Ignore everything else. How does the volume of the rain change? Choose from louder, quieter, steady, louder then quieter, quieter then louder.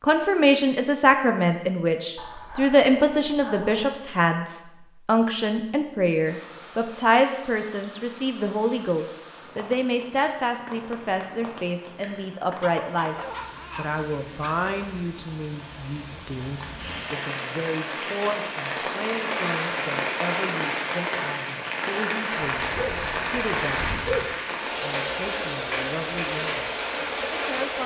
louder.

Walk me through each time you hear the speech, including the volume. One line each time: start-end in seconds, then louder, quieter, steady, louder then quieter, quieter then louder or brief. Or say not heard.
0.0-27.8 quieter.